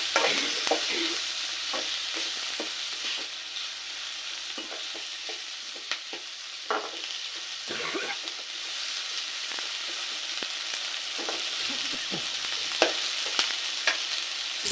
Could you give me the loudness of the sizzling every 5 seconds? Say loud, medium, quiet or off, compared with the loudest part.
loud, medium, loud.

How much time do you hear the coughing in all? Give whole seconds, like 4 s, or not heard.
3 s.